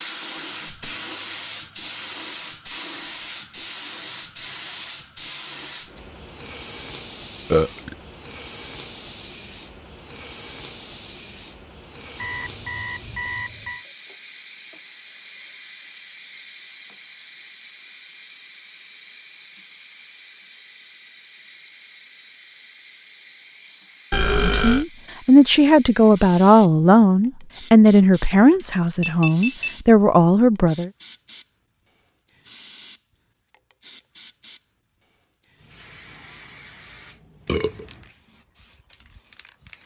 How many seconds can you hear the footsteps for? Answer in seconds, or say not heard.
not heard.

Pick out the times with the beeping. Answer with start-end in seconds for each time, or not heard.
12.2-13.8, 28.6-29.8.